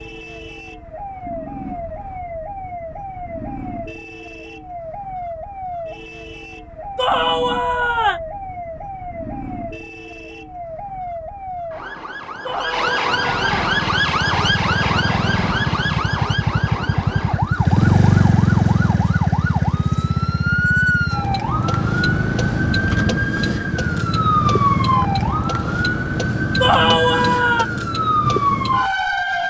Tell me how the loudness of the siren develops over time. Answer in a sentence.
The volume of the siren goes up.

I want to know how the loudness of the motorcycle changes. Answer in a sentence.
The volume of the motorcycle goes up, then down.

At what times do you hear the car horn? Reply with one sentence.
You can't hear the car horn here.